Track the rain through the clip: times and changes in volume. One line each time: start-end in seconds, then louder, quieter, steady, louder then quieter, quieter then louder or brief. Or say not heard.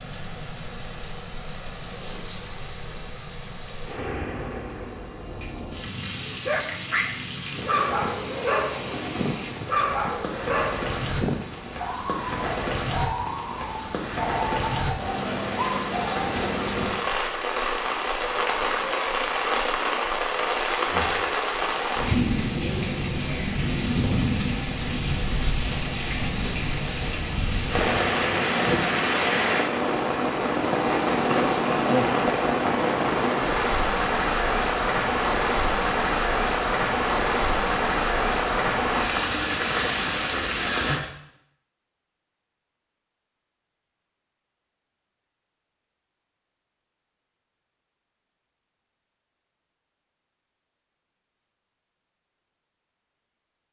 0.0-41.0 louder.